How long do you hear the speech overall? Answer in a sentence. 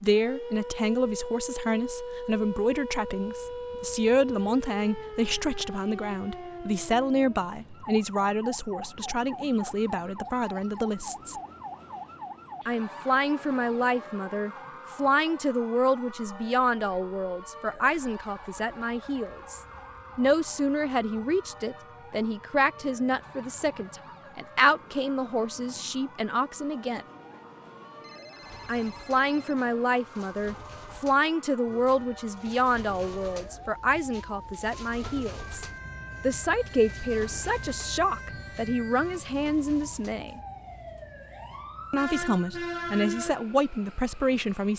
You can hear the speech for 40 seconds altogether.